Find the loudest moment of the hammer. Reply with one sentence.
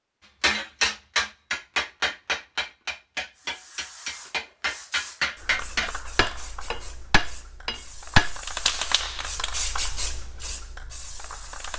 The volume of the hammer peaks at 8 seconds.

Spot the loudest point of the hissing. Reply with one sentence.
The loudest moment of the hissing is at 9 seconds.